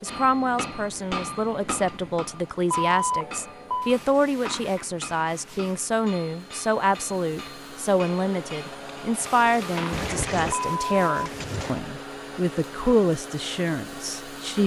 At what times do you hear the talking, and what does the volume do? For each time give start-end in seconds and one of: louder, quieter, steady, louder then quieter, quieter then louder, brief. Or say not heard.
0.0-14.6 steady.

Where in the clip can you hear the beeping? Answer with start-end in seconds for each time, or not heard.
2.7-4.0, 9.9-11.8.